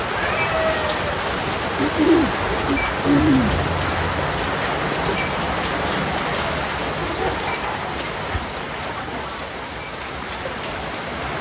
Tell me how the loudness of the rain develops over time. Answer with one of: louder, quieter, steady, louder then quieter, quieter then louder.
quieter.